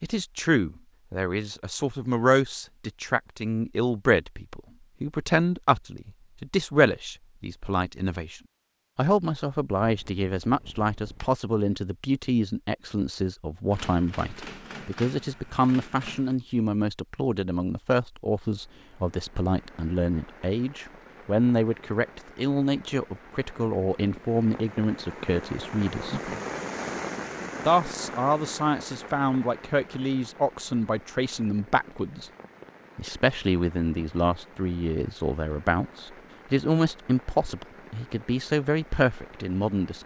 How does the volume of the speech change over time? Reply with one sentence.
The volume of the speech stays about the same.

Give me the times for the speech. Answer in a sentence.
The speech can be heard from 0.0 to 26.2 s, from 27.6 to 32.2 s and from 33.0 to 40.0 s.